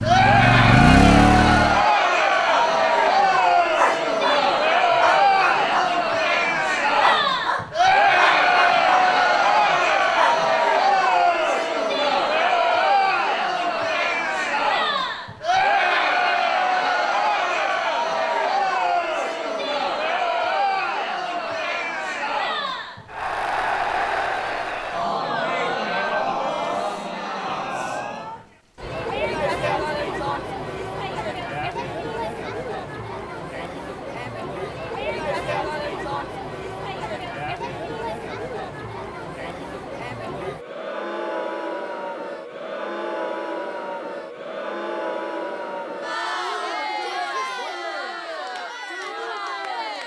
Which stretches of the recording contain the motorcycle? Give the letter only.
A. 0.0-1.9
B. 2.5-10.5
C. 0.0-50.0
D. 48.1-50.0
A.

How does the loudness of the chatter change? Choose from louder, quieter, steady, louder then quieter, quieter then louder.
quieter.